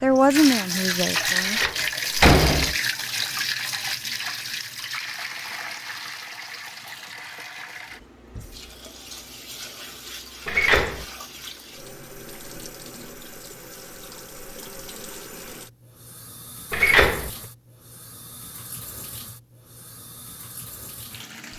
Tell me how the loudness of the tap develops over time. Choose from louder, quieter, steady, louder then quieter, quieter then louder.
quieter.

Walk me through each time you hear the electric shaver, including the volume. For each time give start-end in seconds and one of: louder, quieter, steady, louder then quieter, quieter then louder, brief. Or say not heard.
not heard.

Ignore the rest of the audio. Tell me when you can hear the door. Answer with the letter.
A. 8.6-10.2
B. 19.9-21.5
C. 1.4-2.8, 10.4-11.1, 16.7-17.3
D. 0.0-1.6
C.